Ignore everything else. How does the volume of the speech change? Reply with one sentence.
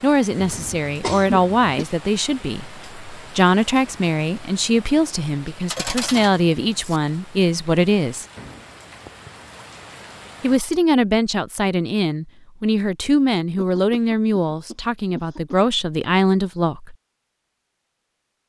The loudness of the speech stays about the same.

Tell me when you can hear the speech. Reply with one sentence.
The speech can be heard from 0.0 to 8.2 s and from 10.4 to 16.9 s.